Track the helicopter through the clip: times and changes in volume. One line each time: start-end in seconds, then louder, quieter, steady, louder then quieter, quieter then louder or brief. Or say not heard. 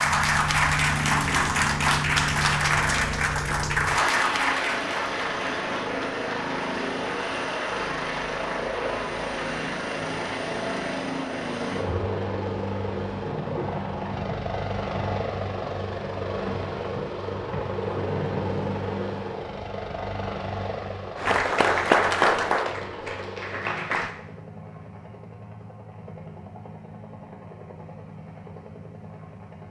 0.0-29.6 quieter.